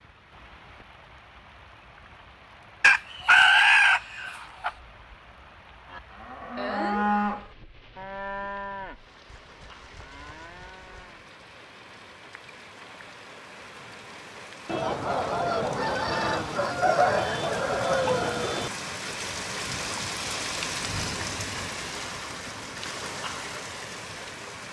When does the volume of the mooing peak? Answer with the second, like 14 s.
7 s.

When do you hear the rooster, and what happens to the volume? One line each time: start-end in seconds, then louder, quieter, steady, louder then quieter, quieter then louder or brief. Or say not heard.
2.8-4.7 brief
14.7-18.7 steady.